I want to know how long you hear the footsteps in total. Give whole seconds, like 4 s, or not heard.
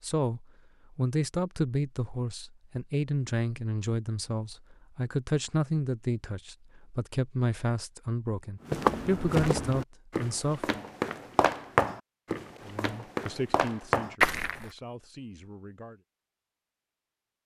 6 s.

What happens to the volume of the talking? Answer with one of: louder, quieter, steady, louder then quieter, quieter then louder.
quieter.